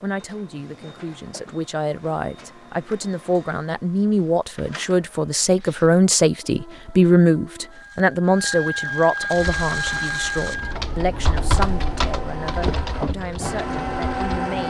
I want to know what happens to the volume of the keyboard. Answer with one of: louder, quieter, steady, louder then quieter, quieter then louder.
louder then quieter.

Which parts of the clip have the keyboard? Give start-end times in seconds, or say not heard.
9.3-14.4.